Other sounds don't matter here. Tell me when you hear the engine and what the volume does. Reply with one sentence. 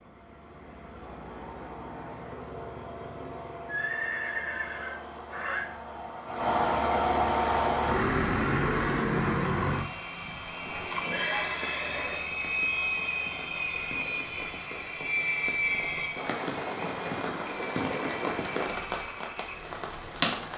You can hear the engine from 0.0 to 20.5 s, getting louder then quieter.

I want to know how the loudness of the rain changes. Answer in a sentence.
The volume of the rain goes up.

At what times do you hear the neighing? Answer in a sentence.
The neighing can be heard from 3.1 to 5.7 s and from 10.7 to 12.2 s.